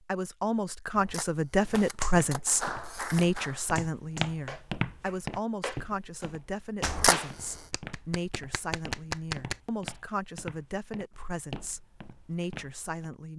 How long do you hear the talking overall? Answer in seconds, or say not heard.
13 s.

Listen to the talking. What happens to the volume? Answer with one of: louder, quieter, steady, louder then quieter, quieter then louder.
quieter.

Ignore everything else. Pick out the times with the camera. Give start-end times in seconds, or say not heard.
0.9-3.4, 6.8-7.6.